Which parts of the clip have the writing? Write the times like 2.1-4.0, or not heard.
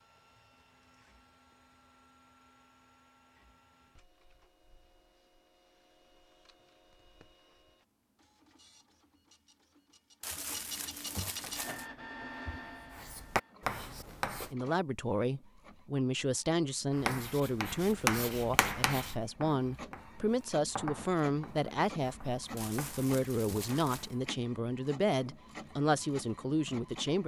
11.4-14.5, 16.9-24.3.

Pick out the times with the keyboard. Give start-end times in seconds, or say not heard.
not heard.